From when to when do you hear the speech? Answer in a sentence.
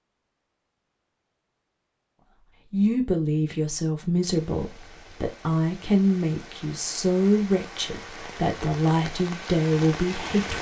The speech can be heard from 2.7 to 10.5 s.